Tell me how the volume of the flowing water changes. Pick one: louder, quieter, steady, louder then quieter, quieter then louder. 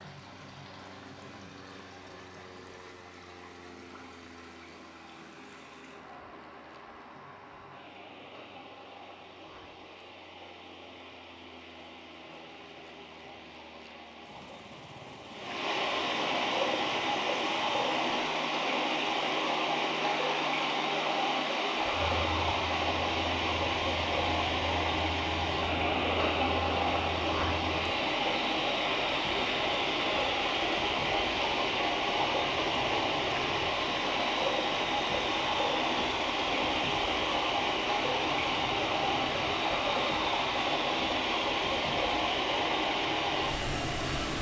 louder.